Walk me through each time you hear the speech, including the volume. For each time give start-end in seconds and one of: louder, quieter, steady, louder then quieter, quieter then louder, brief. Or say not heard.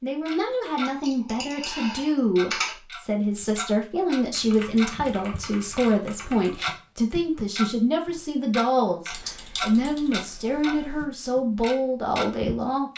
0.0-12.9 steady.